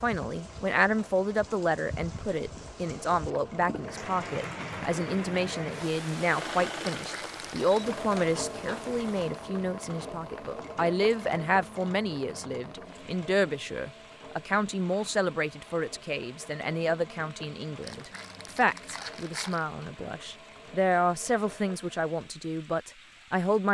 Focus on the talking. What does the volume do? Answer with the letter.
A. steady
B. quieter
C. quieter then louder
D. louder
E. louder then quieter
A.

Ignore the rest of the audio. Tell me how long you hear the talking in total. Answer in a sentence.
The talking can be heard for 24 seconds in total.